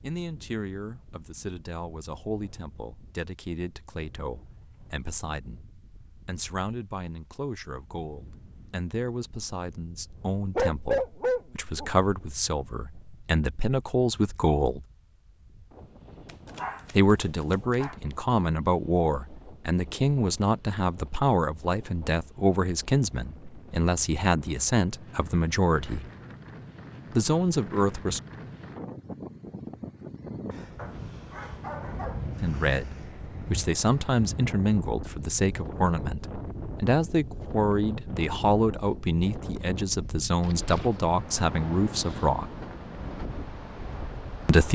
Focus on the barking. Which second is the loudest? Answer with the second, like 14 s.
11 s.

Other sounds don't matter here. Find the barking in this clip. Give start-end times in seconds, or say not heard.
10.6-11.9, 16.2-17.9, 30.8-32.2.